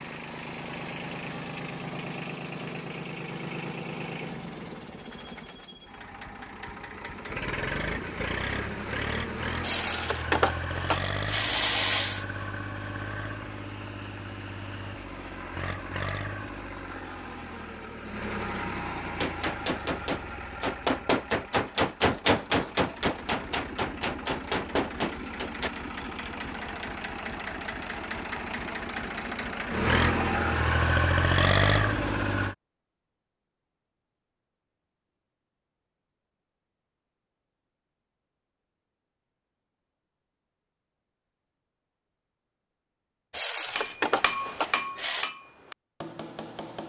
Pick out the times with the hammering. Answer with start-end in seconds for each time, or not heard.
19.2-25.7, 43.8-46.8.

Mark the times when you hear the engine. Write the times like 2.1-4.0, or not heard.
0.0-32.5.